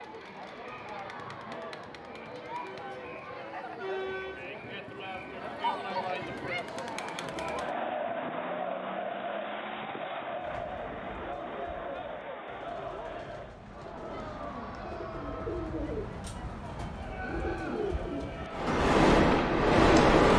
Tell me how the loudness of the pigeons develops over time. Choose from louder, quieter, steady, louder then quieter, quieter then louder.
louder.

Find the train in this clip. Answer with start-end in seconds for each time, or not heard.
18.5-20.3.